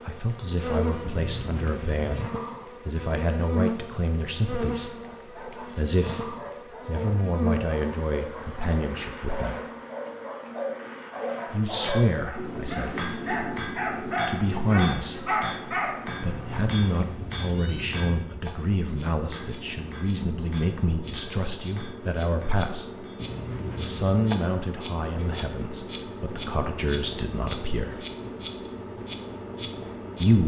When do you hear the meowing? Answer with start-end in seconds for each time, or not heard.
1.0-2.3, 16.2-18.1, 23.1-24.2.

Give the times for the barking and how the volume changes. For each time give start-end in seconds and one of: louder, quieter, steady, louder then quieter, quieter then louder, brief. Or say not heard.
5.0-16.0 louder.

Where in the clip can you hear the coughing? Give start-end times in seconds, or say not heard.
not heard.